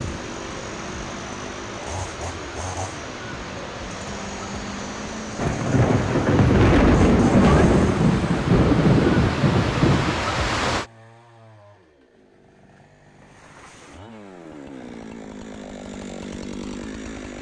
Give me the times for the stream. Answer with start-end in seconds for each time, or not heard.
0.0-10.9.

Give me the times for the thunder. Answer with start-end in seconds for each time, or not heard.
5.3-10.2.